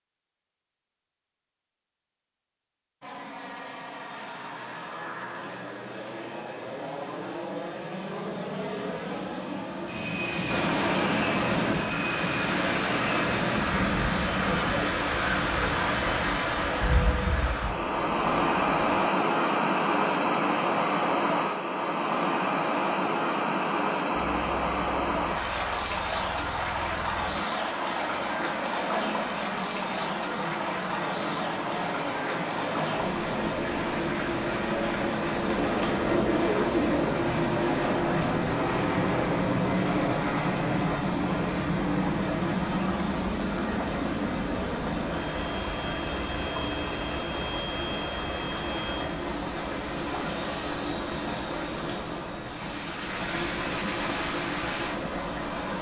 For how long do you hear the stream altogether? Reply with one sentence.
The stream can be heard for 45 seconds in total.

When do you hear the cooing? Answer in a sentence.
You can hear the cooing from 35.5 to 37.0 s.